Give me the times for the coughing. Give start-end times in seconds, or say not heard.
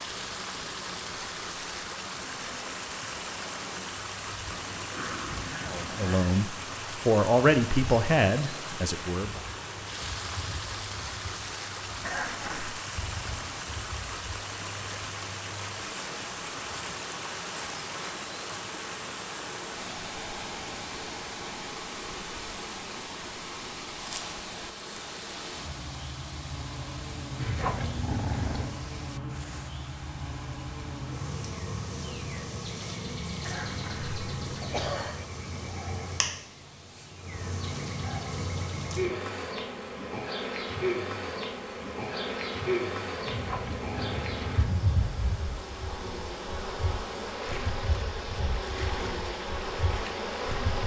12.1-12.8, 33.4-35.2.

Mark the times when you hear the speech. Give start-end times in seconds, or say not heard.
5.7-9.4.